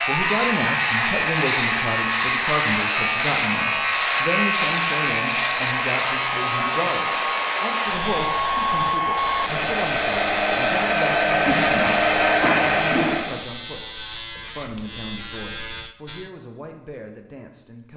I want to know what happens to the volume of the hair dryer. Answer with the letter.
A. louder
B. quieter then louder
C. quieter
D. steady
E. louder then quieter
A.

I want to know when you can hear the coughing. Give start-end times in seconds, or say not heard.
11.4-13.2.